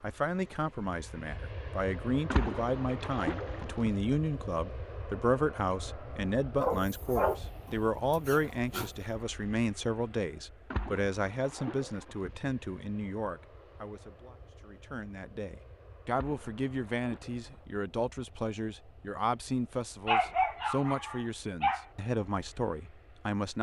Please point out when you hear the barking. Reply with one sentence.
You can hear the barking from 6.5 to 8.9 s and from 20.1 to 21.9 s.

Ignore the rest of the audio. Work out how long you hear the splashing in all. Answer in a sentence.
The splashing can be heard for 5 seconds in total.